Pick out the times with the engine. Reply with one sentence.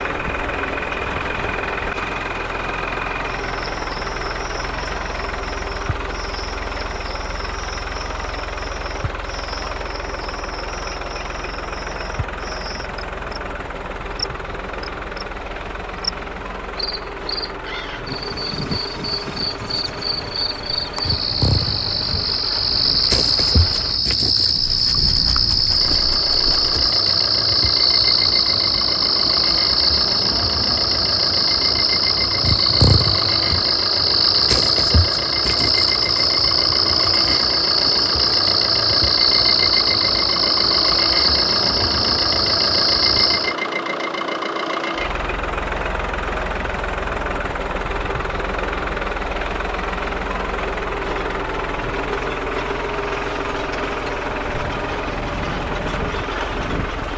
The engine can be heard from 0.0 to 57.1 s.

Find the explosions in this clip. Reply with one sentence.
You can't hear the explosions here.